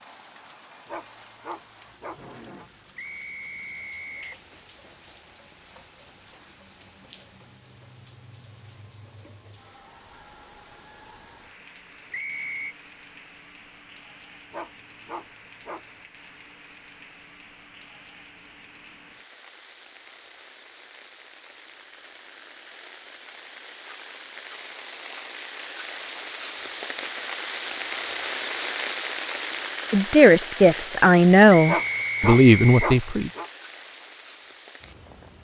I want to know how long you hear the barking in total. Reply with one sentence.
You can hear the barking for 5 seconds altogether.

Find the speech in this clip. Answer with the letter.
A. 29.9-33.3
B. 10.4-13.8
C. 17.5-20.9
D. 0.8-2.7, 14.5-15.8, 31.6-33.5
A.